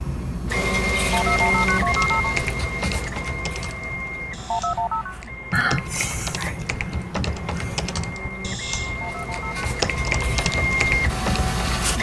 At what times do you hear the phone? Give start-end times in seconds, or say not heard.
1.1-2.4, 4.5-5.2, 9.0-9.7.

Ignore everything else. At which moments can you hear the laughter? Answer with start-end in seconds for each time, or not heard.
5.5-8.2.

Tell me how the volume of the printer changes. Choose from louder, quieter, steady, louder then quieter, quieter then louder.
quieter then louder.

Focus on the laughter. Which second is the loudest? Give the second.
6 s.